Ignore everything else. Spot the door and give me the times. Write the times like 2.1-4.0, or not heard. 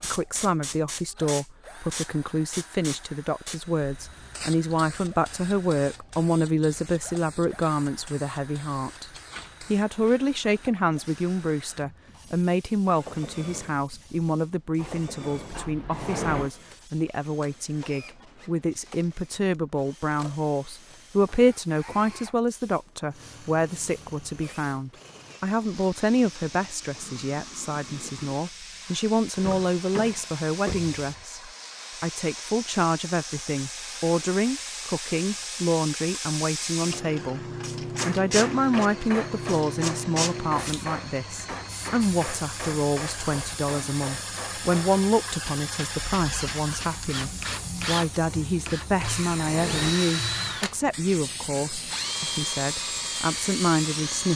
14.8-16.5, 29.4-31.2, 48.2-50.0.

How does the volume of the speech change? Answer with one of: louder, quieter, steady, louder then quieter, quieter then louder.
steady.